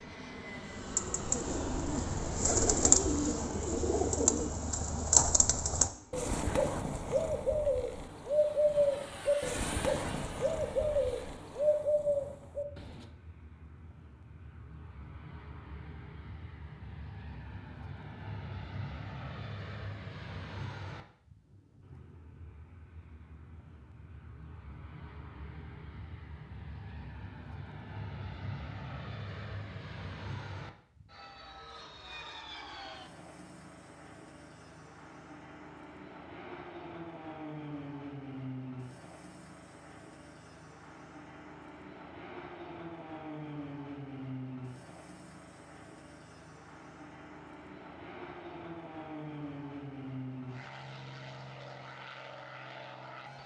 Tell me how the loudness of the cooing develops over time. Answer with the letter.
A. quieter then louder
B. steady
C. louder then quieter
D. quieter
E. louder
B.